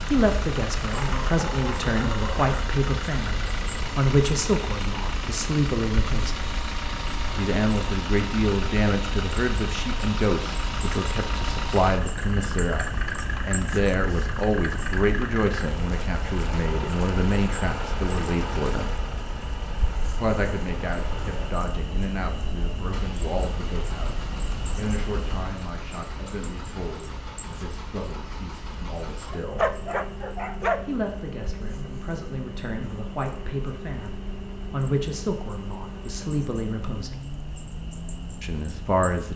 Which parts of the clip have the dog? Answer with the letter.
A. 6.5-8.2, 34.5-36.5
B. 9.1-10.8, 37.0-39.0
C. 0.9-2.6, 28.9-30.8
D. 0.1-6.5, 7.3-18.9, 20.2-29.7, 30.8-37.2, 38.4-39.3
C.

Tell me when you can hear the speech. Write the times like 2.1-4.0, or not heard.
0.1-6.5, 7.3-18.9, 20.2-29.7, 30.8-37.2, 38.4-39.3.